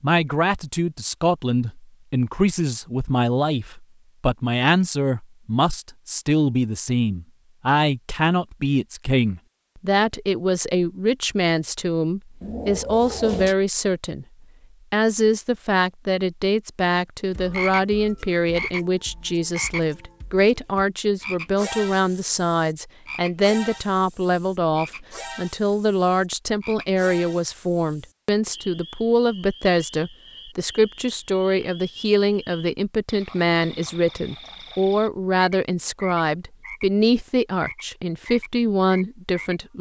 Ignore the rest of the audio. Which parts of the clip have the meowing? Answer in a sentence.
You can hear the meowing from 12.4 to 13.6 s.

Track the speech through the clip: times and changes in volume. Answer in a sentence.
The speech can be heard from 0.0 to 14.2 s, at a steady volume; and from 14.9 to 39.7 s, at a steady volume.